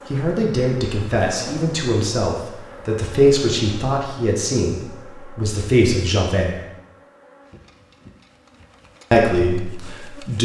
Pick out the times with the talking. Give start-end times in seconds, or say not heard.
0.1-6.5, 9.1-10.4.